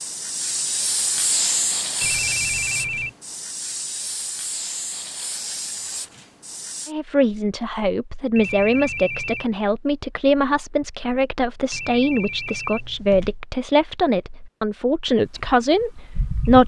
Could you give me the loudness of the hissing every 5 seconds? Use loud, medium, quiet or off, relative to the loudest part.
loud, medium, off, off.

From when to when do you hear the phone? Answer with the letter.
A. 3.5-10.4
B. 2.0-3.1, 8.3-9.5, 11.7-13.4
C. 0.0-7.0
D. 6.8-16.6
B.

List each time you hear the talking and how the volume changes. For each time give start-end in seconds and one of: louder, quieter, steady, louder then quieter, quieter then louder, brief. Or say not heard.
6.8-16.6 steady.